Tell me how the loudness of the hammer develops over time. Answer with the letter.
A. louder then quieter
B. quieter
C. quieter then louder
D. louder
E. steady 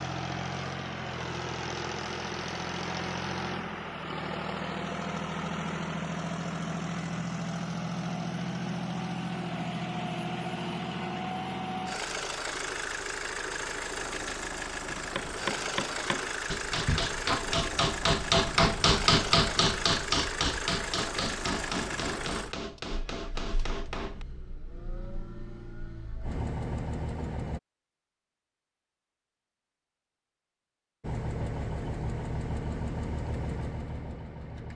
A.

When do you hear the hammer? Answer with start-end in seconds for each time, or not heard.
15.2-24.2.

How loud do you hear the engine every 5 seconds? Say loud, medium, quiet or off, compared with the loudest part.
loud, loud, loud, loud, medium, medium, loud.